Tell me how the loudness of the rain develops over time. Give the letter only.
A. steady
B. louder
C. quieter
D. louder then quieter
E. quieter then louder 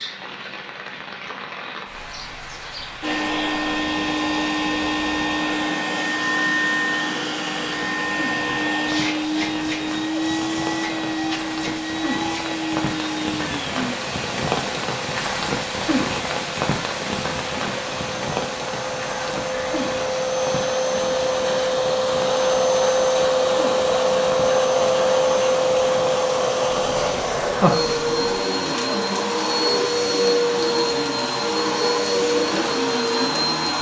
D.